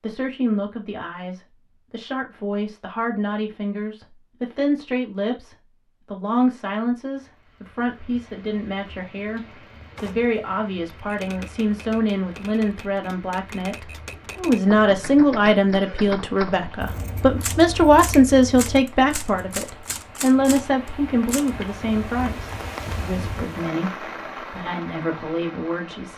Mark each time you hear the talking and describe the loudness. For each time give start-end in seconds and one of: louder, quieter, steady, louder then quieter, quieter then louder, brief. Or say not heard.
0.0-26.1 louder then quieter.